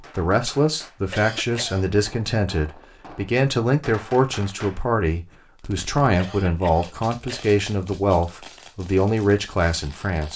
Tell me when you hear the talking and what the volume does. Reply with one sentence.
The talking can be heard from 0.0 to 10.3 s, at a steady volume.